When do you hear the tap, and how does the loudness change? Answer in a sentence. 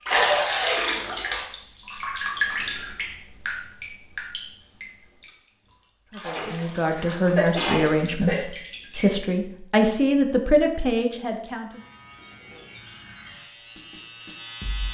The tap can be heard from 0.1 to 9.2 s, getting quieter.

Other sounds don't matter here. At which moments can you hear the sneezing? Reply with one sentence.
You can hear the sneezing from 6.3 to 8.3 s.